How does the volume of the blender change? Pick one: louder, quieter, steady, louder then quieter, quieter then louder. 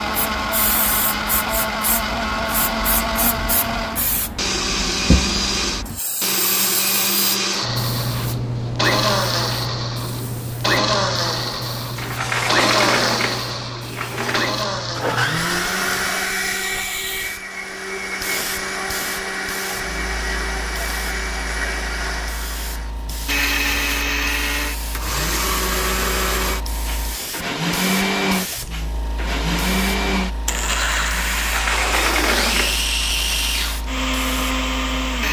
steady.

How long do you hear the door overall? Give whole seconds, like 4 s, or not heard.
4 s.